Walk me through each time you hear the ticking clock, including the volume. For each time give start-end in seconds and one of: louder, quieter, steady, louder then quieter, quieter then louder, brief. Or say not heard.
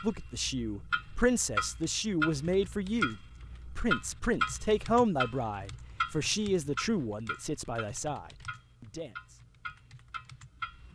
0.0-10.9 quieter.